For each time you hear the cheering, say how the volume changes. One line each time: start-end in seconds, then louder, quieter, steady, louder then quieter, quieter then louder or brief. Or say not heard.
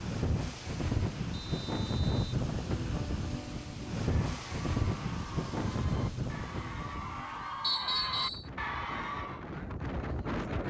4.0-9.4 louder.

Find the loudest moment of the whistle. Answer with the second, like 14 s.
8 s.